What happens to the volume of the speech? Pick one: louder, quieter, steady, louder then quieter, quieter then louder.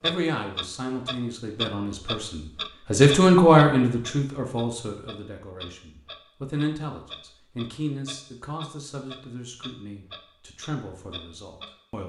louder then quieter.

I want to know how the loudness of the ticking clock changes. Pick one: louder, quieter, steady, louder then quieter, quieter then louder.
quieter.